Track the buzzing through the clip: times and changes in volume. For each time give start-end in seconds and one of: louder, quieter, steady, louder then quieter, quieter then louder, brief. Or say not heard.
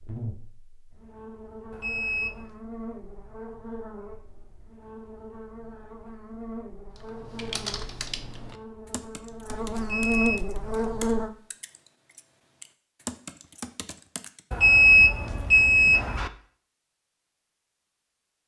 0.0-11.3 louder.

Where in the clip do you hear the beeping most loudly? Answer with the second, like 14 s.
15 s.